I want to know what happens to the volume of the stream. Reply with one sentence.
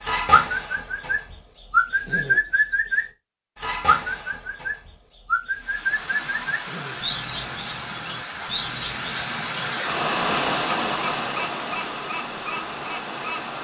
The volume of the stream goes up, then down.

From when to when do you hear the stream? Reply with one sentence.
The stream can be heard from 5.5 to 13.6 s.